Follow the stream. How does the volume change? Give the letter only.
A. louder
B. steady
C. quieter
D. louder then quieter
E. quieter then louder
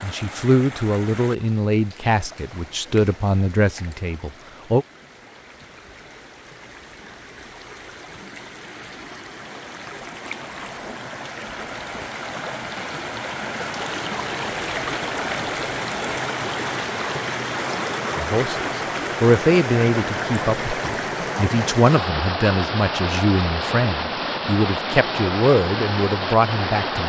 A.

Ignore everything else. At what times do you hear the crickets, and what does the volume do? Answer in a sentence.
The crickets can't be heard in this clip.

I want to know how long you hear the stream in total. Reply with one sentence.
The stream can be heard for 27 seconds in total.